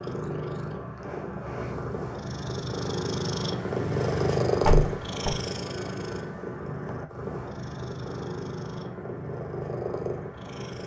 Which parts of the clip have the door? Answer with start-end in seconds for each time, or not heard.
4.6-5.4.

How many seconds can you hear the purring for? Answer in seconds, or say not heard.
11 s.